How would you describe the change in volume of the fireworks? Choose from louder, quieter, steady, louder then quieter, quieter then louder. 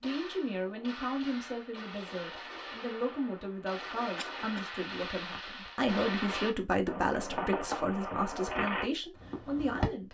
louder.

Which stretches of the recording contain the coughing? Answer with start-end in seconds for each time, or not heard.
4.2-4.8.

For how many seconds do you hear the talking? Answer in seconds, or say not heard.
10 s.